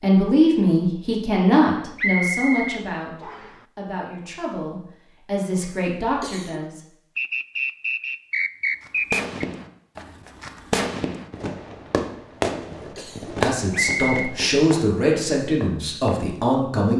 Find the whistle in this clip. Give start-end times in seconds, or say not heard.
1.9-3.5, 7.2-9.4, 13.7-14.3.